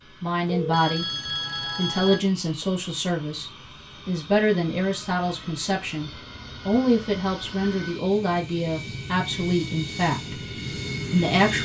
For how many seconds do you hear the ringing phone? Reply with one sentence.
The ringing phone can be heard for 2 seconds in total.